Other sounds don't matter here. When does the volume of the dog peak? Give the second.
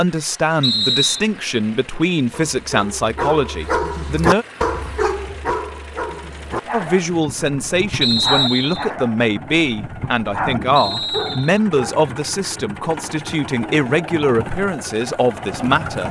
4 s.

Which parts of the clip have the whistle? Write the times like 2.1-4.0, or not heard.
0.6-1.2, 8.0-8.8, 10.8-11.6.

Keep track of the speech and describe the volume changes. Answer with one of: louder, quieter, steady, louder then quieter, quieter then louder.
steady.